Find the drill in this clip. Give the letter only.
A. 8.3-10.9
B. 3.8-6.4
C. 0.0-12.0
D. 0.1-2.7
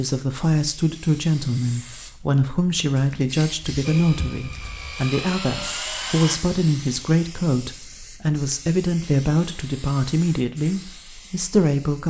B.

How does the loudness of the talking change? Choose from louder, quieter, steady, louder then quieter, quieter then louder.
steady.